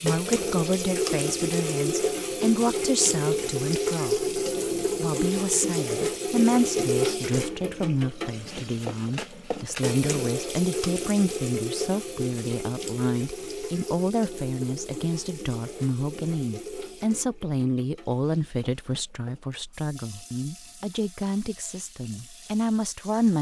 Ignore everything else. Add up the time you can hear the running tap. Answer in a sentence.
The running tap can be heard for 23 seconds in total.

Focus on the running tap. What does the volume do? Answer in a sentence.
The loudness of the running tap goes down.